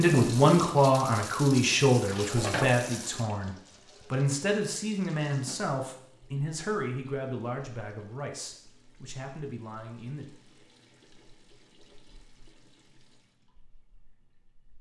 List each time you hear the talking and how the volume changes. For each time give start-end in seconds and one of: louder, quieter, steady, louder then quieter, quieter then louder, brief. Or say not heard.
0.0-10.3 quieter.